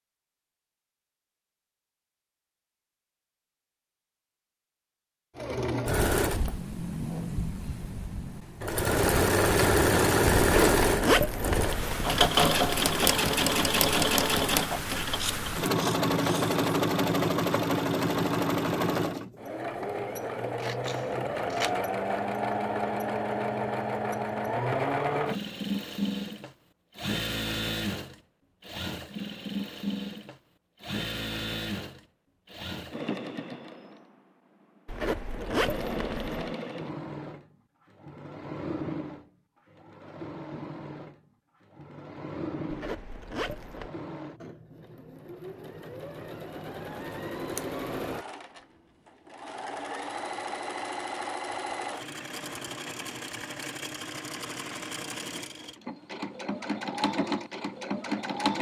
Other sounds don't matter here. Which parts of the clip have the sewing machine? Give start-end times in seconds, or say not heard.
5.3-58.5.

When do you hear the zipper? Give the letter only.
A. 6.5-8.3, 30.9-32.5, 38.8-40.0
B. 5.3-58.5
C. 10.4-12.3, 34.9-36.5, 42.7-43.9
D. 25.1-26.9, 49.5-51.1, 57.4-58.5
C.